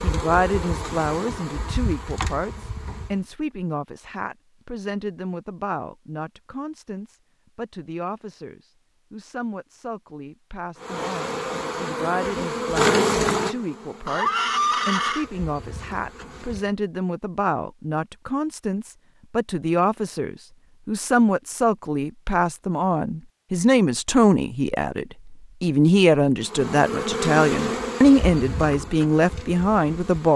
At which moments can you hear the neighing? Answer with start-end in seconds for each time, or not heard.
14.1-15.3.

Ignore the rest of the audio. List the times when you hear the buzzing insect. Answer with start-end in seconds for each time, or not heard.
0.0-3.2, 10.8-16.8, 26.4-30.3.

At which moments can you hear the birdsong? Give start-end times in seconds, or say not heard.
not heard.